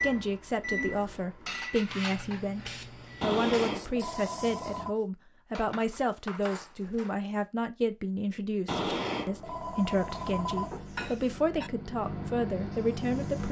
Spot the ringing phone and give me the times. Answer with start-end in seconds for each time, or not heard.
3.2-5.0, 8.7-10.7.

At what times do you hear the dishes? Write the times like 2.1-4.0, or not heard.
0.7-2.8, 5.5-7.2, 10.1-11.7.